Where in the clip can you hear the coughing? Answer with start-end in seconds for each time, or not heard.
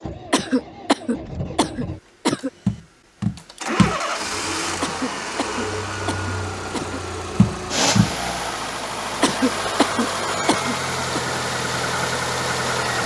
0.3-2.5, 4.8-7.0, 9.2-11.2.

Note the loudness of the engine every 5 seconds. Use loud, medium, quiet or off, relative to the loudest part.
medium, loud, loud.